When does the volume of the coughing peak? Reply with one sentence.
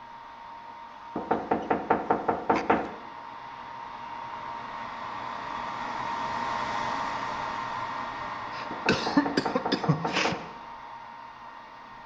The volume of the coughing peaks at 9 seconds.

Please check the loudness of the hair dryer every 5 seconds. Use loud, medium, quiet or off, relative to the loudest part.
medium, loud, medium.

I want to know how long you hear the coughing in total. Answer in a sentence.
You can hear the coughing for 3 seconds altogether.